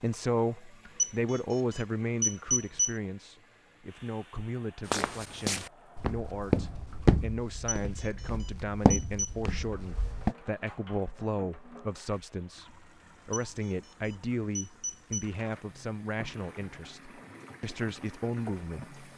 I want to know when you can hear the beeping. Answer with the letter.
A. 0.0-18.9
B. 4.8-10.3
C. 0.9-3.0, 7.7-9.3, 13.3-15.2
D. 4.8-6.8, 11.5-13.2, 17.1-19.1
C.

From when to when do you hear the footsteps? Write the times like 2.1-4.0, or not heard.
4.8-10.3.